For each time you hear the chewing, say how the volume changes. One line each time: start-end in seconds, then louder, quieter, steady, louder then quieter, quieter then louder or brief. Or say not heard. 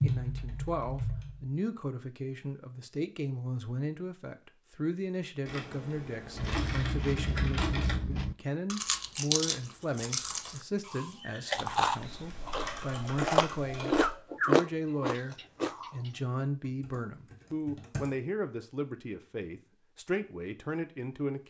6.3-16.1 louder.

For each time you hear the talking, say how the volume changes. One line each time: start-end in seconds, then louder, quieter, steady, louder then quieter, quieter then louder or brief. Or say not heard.
0.0-21.4 steady.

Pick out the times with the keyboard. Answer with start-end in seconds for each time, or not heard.
0.0-1.5, 5.5-8.0, 11.5-14.2, 16.6-18.1.